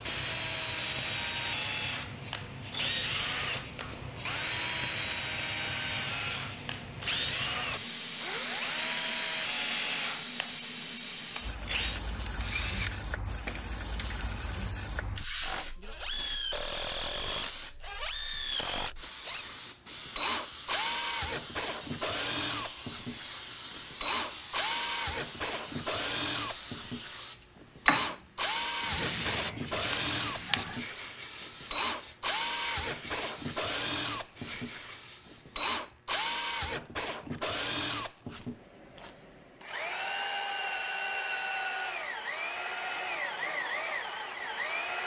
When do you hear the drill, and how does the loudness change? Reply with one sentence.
The drill can be heard from 0.0 to 45.0 s, at a steady volume.